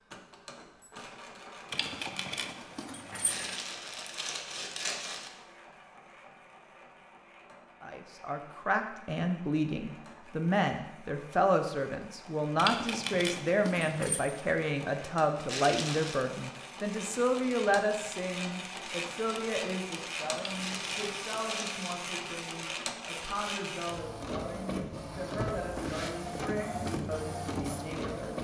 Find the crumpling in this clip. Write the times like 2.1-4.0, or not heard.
3.2-5.3, 15.4-16.1, 20.6-21.9.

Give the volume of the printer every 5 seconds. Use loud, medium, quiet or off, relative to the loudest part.
quiet, quiet, quiet, medium, loud, loud.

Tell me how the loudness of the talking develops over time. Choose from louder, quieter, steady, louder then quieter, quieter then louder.
quieter.